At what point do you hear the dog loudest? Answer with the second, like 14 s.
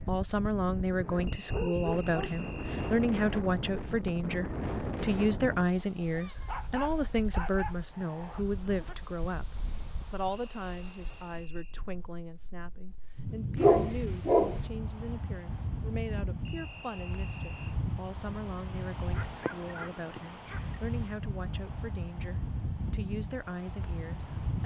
14 s.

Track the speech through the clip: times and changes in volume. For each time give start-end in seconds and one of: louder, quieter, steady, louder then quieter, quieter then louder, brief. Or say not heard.
0.1-24.6 quieter.